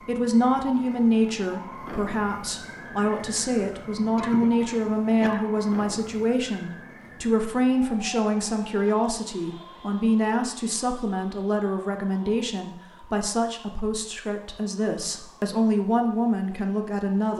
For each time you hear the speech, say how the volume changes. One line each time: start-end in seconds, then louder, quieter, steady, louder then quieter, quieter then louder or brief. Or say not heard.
0.1-17.3 steady.